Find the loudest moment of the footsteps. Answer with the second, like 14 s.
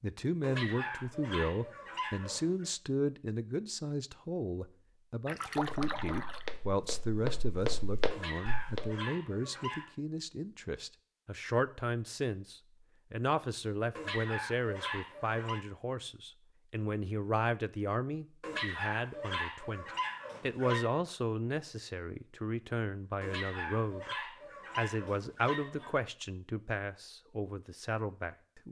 8 s.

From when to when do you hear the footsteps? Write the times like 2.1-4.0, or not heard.
5.5-8.9.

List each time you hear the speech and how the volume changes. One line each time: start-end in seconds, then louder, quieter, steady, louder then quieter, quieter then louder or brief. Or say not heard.
0.0-28.6 steady.